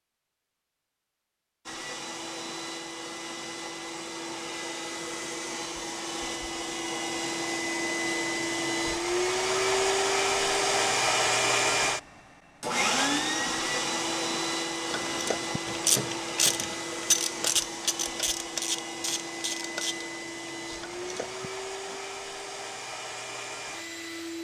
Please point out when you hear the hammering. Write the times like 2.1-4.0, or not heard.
not heard.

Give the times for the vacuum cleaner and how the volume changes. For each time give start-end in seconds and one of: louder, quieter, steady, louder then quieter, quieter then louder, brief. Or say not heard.
1.6-24.3 louder then quieter.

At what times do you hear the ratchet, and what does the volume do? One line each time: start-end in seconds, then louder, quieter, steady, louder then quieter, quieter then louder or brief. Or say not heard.
14.8-22.0 quieter.